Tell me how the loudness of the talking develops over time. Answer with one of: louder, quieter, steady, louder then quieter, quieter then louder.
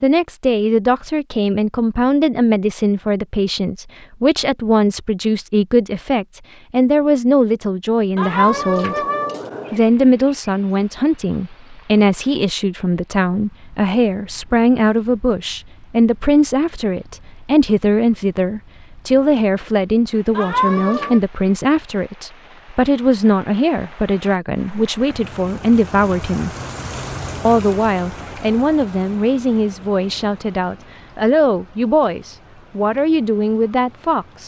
steady.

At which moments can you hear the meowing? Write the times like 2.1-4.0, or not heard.
8.2-9.8, 20.4-21.2.